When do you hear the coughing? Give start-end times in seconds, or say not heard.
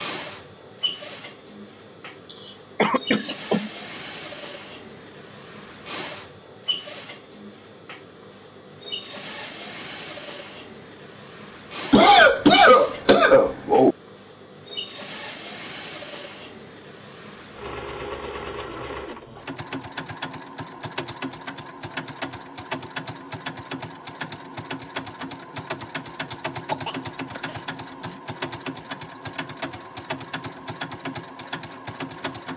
2.8-3.7, 11.9-13.9, 26.7-28.1.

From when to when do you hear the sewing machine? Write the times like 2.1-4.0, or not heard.
0.0-32.5.